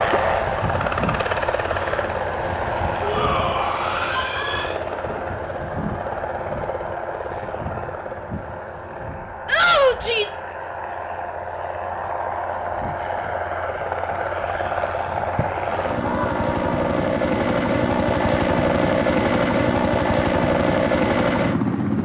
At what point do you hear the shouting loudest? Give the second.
10 s.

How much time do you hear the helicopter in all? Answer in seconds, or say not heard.
22 s.